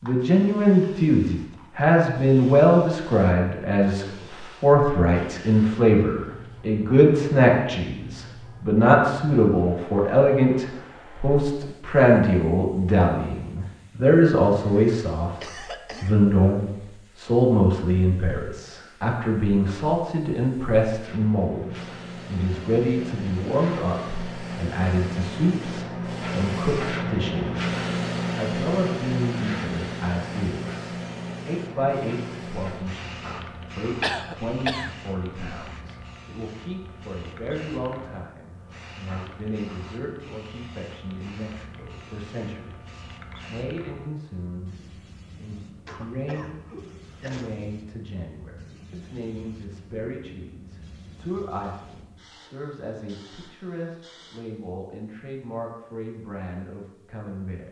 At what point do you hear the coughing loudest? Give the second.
34 s.